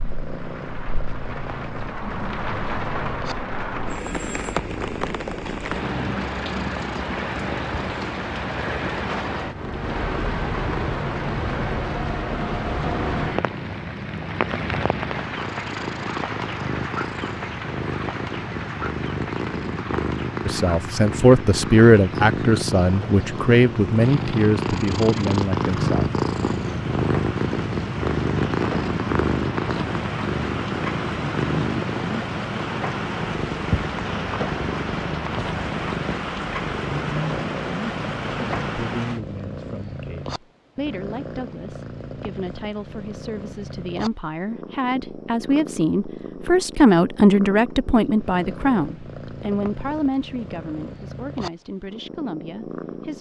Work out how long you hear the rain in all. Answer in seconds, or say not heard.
39 s.